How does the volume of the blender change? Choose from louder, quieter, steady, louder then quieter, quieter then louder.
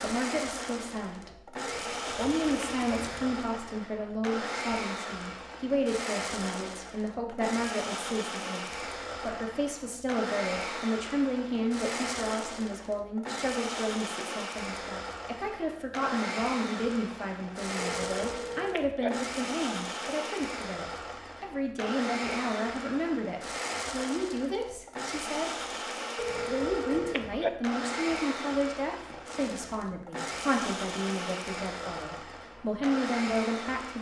steady.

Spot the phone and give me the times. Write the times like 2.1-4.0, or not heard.
1.6-2.9, 17.8-19.1, 26.1-27.5.